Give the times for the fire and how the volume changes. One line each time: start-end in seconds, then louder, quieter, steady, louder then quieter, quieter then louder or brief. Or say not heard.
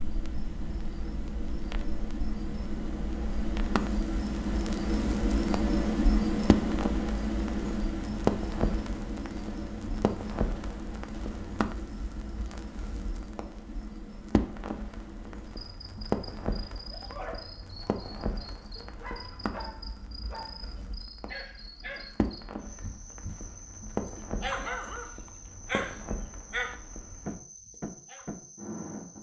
0.0-29.1 louder then quieter.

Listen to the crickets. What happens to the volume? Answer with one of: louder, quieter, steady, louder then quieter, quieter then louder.
quieter.